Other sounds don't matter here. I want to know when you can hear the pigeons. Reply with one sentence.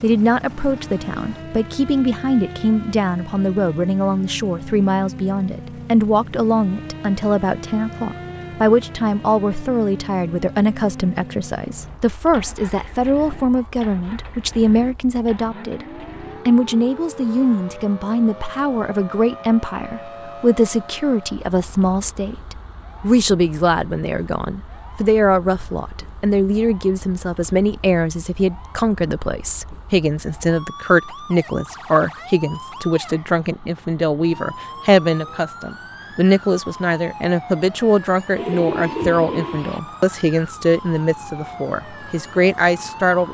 The pigeons can be heard from 38.4 to 39.8 s.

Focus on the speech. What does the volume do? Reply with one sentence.
The volume of the speech stays about the same.